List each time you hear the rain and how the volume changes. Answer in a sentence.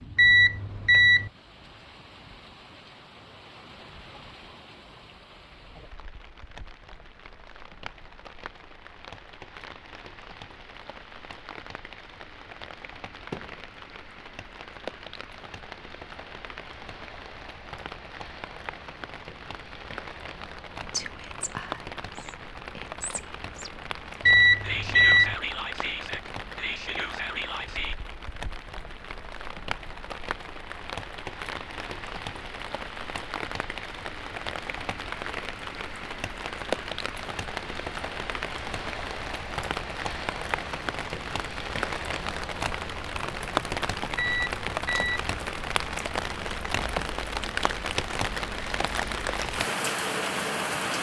You can hear the rain from 0.0 to 50.9 s, getting louder.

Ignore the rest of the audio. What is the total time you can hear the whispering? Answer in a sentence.
The whispering can be heard for 7 seconds in total.